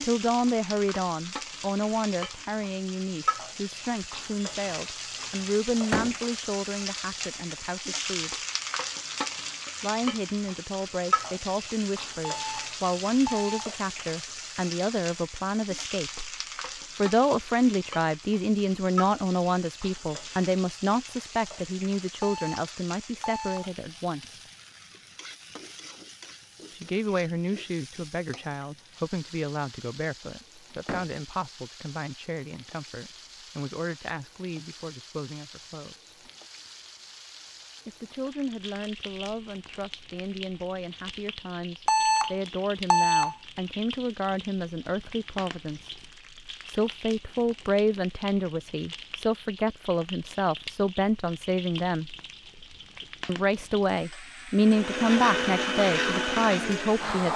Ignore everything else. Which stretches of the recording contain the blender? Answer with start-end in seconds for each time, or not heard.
54.6-57.3.